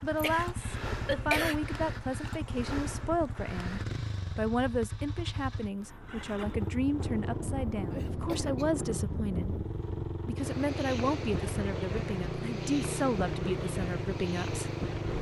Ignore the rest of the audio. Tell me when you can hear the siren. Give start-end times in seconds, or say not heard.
not heard.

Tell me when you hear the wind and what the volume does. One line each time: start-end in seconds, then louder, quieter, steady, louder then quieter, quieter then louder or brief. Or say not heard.
6.8-15.1 steady.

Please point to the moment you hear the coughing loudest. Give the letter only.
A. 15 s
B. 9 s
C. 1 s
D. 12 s
C.